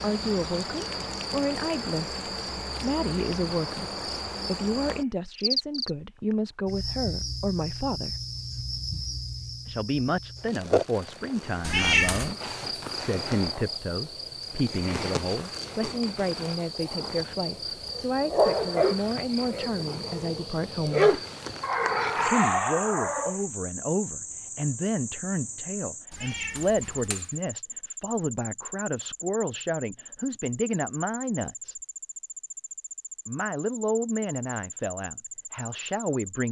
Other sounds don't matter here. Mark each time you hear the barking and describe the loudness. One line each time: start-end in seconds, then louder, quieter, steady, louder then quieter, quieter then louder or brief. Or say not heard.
17.9-23.4 quieter then louder.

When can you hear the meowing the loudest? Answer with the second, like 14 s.
12 s.